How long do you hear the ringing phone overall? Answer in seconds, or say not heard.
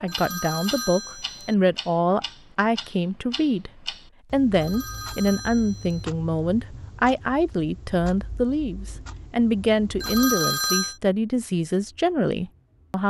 4 s.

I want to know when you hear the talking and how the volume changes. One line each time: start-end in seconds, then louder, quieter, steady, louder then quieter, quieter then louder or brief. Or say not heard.
0.0-13.0 steady.